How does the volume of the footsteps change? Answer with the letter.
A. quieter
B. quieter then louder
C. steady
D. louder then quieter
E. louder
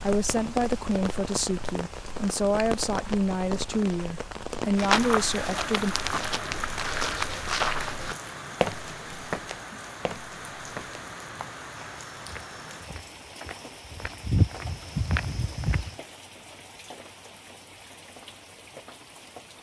B.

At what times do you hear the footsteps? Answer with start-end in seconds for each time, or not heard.
4.8-15.9.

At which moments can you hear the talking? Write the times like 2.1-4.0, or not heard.
0.0-6.0.